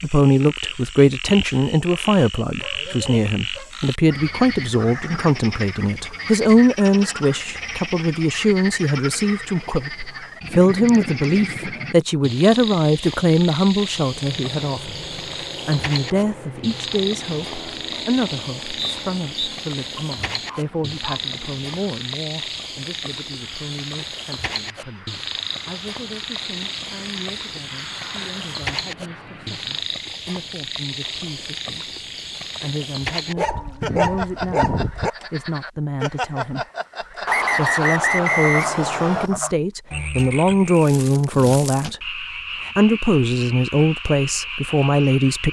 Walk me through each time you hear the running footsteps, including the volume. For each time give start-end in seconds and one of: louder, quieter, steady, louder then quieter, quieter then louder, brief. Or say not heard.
not heard.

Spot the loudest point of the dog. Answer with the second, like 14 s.
34 s.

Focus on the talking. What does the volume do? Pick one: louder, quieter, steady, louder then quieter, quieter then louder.
quieter then louder.